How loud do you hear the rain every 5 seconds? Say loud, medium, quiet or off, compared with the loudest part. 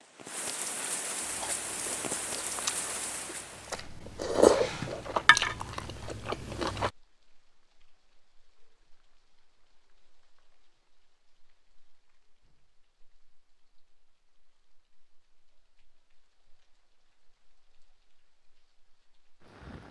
loud, quiet, quiet, quiet.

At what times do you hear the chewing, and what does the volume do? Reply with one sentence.
The chewing can be heard from 1.2 to 6.9 s, getting louder then quieter.